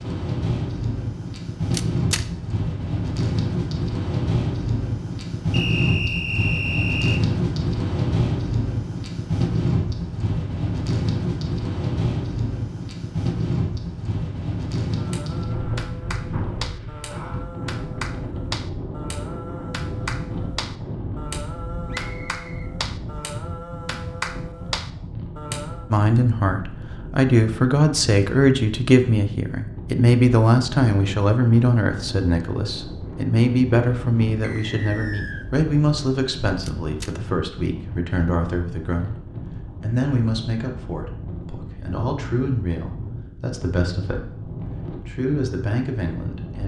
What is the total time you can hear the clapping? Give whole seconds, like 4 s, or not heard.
11 s.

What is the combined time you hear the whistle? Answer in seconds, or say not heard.
4 s.